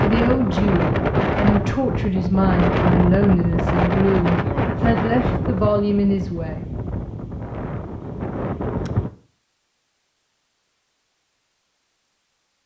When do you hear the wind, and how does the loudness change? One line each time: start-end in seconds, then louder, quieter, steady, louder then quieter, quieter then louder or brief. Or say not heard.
0.0-9.1 quieter.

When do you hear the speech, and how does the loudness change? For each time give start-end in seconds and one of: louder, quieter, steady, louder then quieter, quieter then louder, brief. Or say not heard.
0.0-6.7 steady.